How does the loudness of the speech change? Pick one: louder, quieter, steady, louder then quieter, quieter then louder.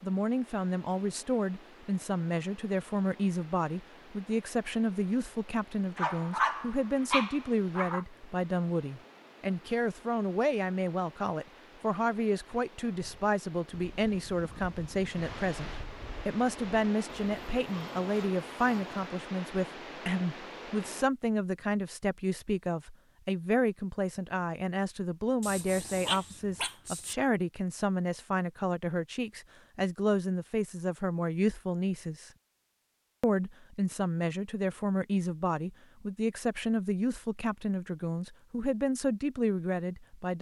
steady.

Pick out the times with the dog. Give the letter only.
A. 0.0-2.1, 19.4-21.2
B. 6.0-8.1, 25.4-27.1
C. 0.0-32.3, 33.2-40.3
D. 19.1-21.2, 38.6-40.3
B.